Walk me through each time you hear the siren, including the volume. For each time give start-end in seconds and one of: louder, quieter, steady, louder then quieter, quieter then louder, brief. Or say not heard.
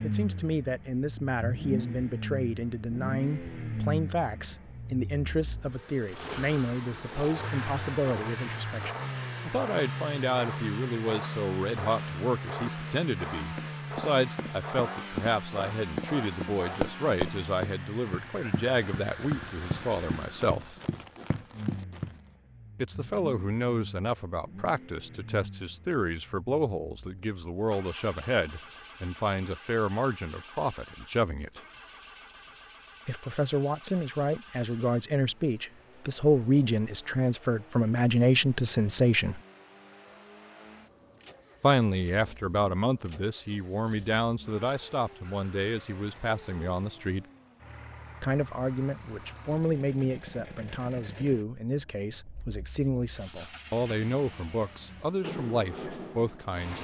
not heard.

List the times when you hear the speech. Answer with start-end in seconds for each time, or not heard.
0.0-20.8, 22.8-31.6, 33.0-39.4, 41.6-47.2, 48.2-56.7.